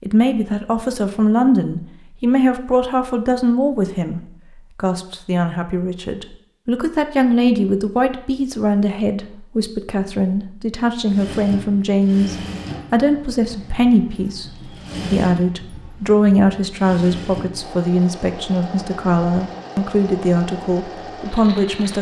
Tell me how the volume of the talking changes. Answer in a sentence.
The loudness of the talking stays about the same.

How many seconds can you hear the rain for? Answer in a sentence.
You can't hear the rain here.